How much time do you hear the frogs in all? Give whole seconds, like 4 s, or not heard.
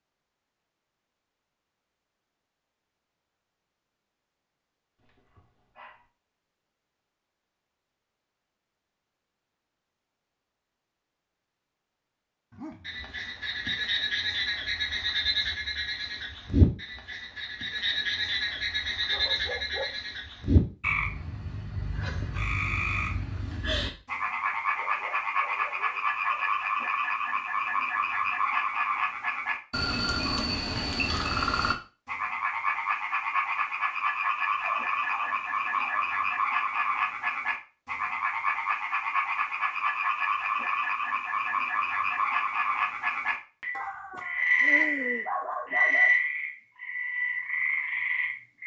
36 s.